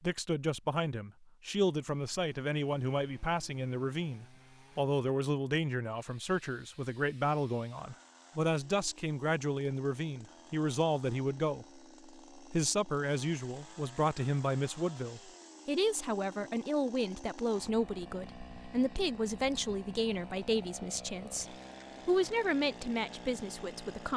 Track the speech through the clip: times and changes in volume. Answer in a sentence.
The speech can be heard from 0.0 to 24.1 s, at a steady volume.